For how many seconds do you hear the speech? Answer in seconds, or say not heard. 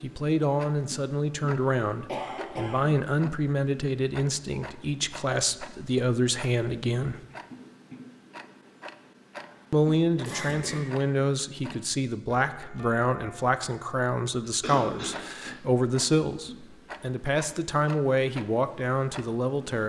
17 s.